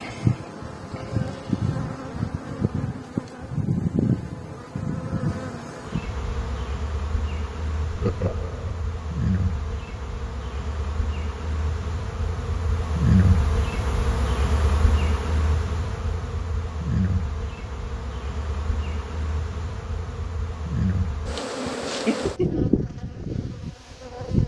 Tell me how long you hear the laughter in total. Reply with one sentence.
The laughter can be heard for 2 seconds in total.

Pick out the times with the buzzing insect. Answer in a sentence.
You can hear the buzzing insect from 0.0 to 24.4 s.